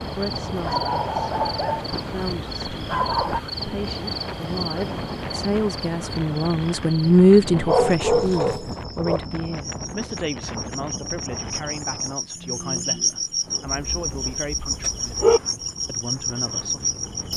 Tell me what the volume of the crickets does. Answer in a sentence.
The loudness of the crickets goes down, then up.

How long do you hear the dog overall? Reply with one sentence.
You can hear the dog for 6 seconds altogether.